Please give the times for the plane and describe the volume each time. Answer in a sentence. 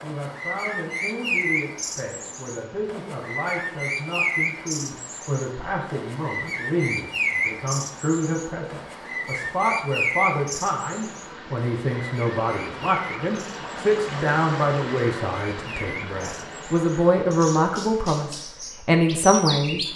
You can't hear the plane here.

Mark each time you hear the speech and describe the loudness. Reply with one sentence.
You can hear the speech from 0.0 to 19.9 s, getting louder.